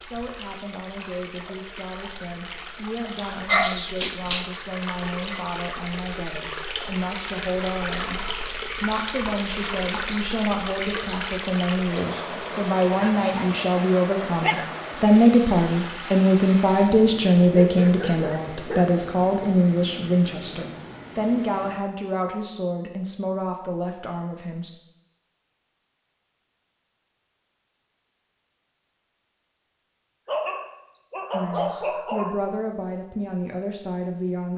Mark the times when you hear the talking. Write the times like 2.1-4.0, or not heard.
0.0-24.7, 31.3-34.5.